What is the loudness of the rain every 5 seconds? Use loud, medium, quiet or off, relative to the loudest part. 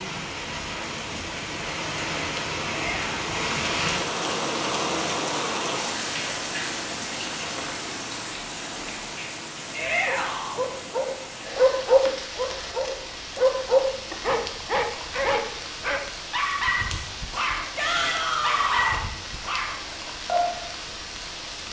loud, loud, medium, medium, medium.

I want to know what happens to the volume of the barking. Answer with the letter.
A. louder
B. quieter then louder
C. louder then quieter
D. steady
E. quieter
E.